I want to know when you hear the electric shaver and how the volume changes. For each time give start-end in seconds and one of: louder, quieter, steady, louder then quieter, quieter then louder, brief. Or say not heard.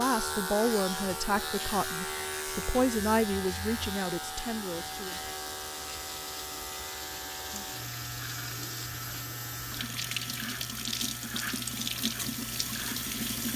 0.0-13.5 quieter.